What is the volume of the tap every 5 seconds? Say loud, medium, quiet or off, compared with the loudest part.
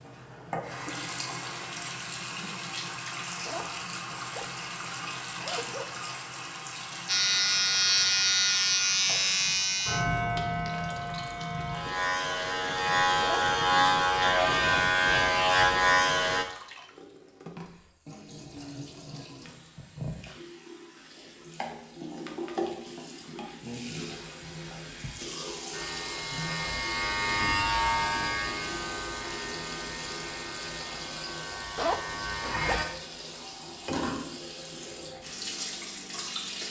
loud, loud, medium, medium, loud, loud, loud, loud.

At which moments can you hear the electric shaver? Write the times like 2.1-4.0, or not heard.
7.0-16.4, 25.7-32.9.